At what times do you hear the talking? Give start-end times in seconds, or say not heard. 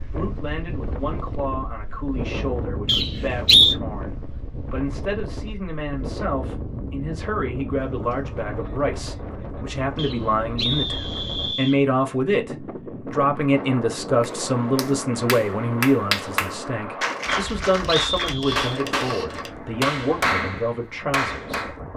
0.0-21.7.